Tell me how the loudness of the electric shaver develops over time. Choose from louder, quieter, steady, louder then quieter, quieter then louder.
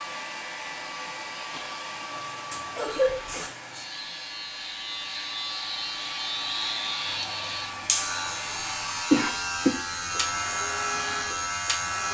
louder.